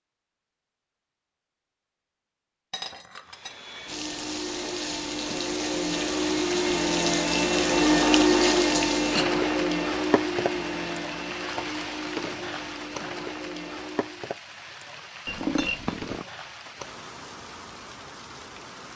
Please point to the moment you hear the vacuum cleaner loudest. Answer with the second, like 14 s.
8 s.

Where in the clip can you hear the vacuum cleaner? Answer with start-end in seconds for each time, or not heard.
3.2-14.4.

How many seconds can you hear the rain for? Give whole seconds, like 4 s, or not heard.
15 s.